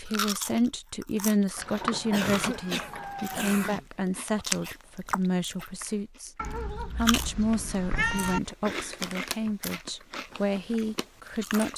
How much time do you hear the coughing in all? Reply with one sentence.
You can hear the coughing for 2 seconds altogether.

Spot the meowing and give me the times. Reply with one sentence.
The meowing can be heard from 1.6 to 3.5 s and from 6.3 to 8.4 s.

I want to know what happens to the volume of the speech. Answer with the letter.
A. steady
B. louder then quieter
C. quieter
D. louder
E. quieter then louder
A.